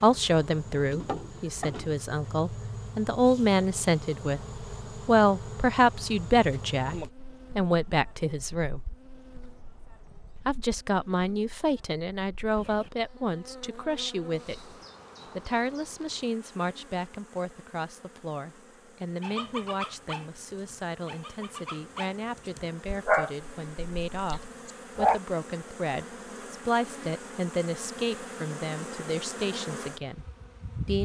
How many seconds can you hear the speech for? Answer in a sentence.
You can hear the speech for 28 seconds altogether.